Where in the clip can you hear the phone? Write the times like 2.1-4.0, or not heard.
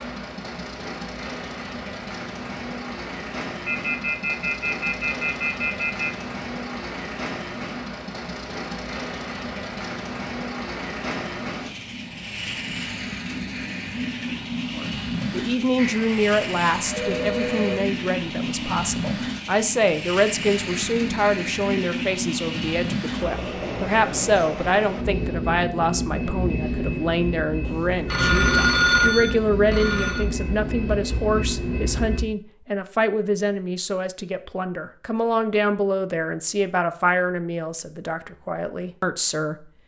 3.6-6.2, 15.8-17.8, 27.6-30.2.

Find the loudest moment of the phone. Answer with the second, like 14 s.
29 s.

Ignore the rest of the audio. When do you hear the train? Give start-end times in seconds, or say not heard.
0.0-32.2.